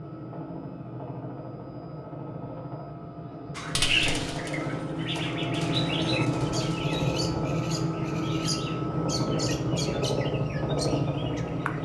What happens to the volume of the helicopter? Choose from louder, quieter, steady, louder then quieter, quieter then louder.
louder.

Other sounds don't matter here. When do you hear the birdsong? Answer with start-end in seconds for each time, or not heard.
3.5-11.7.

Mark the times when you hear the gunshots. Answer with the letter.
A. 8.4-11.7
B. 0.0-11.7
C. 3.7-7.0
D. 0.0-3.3
C.